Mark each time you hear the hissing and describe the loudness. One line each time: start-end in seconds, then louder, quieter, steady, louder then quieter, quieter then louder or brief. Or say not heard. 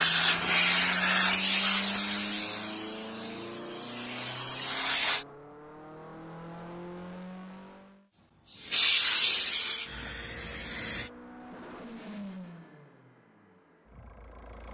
0.0-5.2 quieter then louder
8.5-11.1 brief.